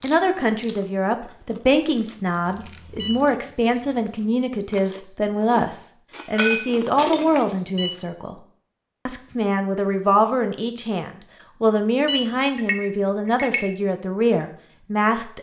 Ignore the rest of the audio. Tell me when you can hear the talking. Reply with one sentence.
The talking can be heard from 0.0 to 8.3 s and from 9.1 to 15.3 s.